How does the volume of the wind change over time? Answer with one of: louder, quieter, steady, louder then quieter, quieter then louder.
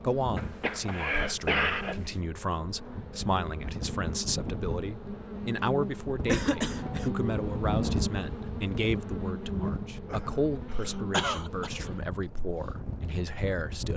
louder then quieter.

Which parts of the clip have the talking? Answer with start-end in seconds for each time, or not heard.
0.0-13.9.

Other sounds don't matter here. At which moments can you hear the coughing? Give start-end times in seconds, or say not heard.
0.3-2.1, 6.2-7.1, 10.8-11.7.